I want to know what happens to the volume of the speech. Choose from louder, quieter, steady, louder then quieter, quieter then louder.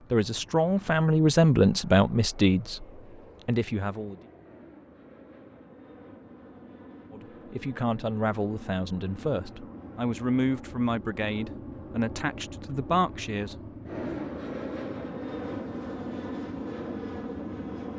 quieter.